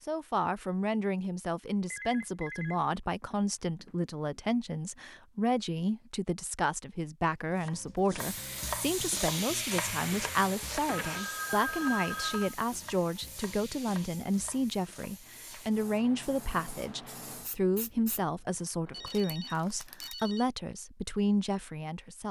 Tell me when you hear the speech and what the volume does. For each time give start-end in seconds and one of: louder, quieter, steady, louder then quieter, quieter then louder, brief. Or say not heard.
0.1-22.2 steady.